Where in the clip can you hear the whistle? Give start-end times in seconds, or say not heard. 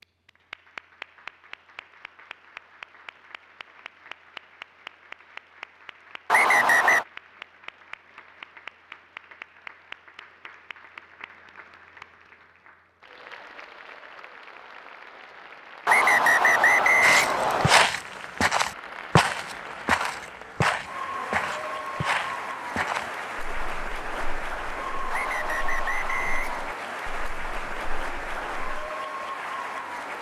6.3-7.0, 15.8-17.9, 25.1-26.8.